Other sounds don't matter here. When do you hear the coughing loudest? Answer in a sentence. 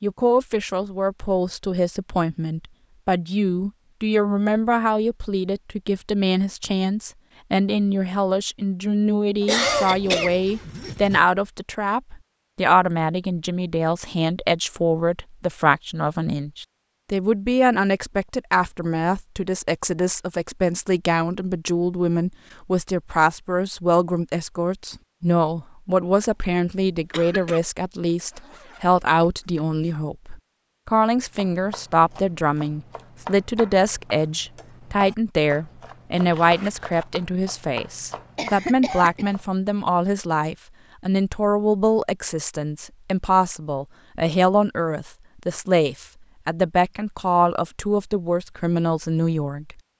The volume of the coughing peaks at 10 seconds.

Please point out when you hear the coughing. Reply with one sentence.
You can hear the coughing from 9.4 to 10.3 s, from 27.1 to 27.6 s and from 38.4 to 39.3 s.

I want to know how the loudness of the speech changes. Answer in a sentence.
The volume of the speech stays about the same.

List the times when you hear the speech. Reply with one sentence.
The speech can be heard from 0.0 to 49.8 s.